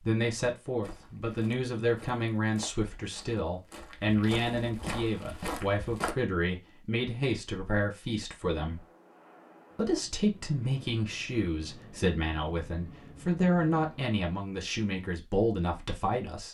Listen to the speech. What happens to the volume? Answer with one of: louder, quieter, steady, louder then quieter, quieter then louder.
steady.